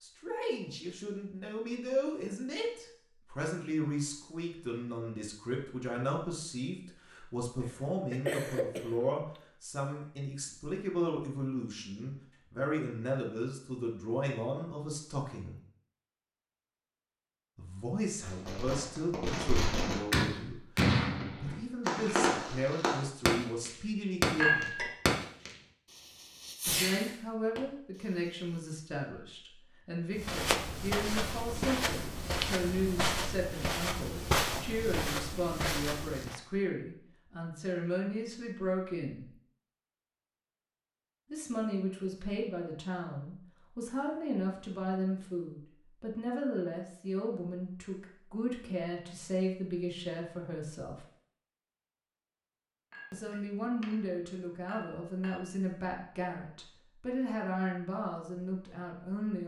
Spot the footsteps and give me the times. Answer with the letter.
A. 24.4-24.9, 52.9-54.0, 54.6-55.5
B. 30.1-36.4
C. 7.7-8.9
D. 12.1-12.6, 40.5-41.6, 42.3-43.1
B.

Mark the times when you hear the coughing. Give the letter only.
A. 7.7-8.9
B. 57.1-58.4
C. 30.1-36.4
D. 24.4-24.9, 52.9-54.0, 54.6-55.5
A.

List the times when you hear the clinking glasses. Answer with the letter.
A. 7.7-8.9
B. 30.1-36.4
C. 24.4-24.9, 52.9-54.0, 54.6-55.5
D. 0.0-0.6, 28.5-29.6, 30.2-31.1
C.